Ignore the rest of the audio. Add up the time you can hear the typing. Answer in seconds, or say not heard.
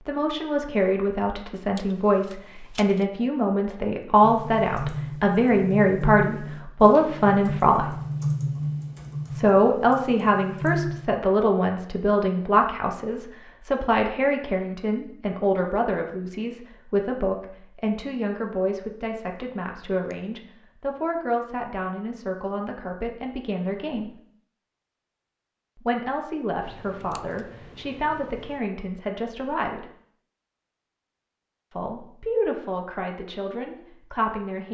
7 s.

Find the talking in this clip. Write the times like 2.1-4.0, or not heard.
0.1-7.9, 9.3-24.1, 25.8-29.9, 31.7-34.6.